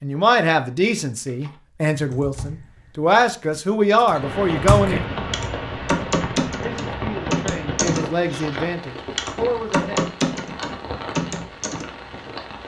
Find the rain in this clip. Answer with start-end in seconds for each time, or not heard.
4.0-12.6.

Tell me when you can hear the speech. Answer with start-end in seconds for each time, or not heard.
0.0-5.0, 6.6-10.1.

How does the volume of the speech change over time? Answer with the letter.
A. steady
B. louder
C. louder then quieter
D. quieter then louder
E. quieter
E.